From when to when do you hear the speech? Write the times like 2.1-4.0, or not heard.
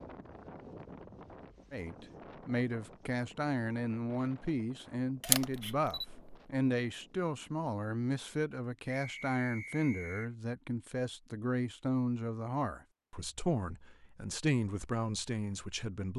1.7-16.1.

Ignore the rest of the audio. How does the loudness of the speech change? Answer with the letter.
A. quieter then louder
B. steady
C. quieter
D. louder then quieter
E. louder
B.